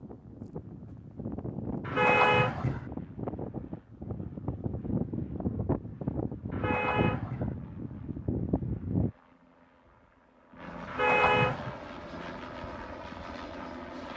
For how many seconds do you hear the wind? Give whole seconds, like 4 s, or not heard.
9 s.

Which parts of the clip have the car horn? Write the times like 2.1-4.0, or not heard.
1.9-2.9, 6.5-7.5, 10.8-11.8.